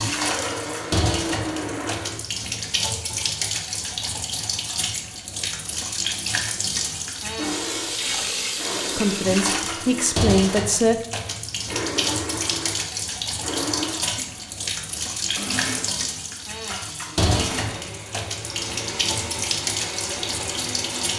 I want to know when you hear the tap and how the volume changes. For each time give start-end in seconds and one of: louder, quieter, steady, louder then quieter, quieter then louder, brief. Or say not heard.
0.0-21.1 steady.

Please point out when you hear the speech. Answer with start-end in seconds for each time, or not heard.
8.9-11.1.